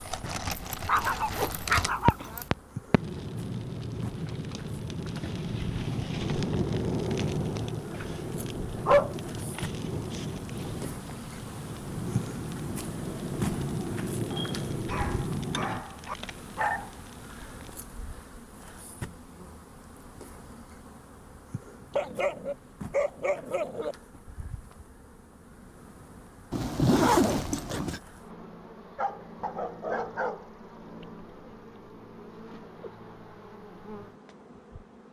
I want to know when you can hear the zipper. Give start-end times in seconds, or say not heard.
0.5-2.5, 26.5-28.0.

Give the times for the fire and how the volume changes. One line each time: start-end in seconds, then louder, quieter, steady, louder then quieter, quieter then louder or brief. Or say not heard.
0.0-17.8 steady.